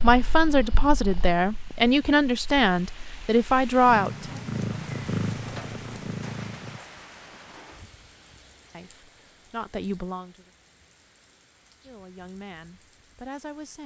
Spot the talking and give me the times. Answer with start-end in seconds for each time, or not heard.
0.0-4.3, 8.7-10.5, 11.8-13.8.